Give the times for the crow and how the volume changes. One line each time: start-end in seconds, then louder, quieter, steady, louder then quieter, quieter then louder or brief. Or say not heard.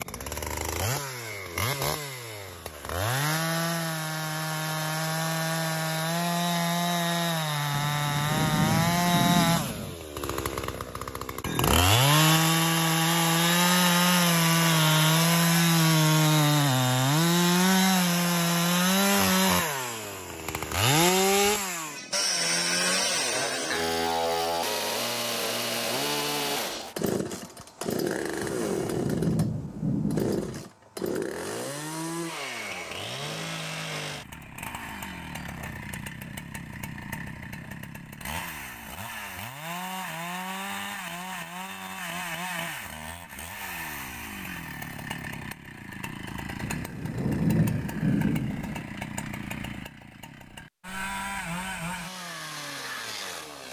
not heard.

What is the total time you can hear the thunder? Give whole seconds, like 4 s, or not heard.
7 s.